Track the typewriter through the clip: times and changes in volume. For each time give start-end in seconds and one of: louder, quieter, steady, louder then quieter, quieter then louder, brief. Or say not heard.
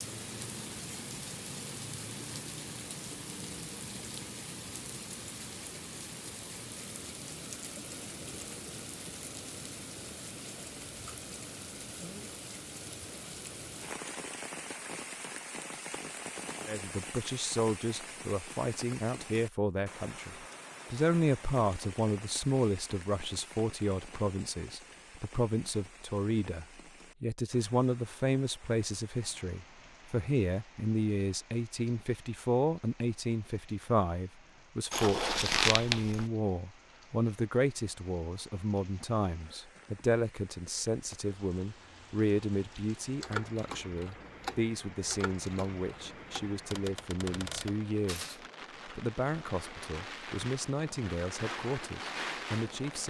43.2-48.4 quieter then louder.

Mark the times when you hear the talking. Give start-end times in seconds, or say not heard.
16.6-53.0.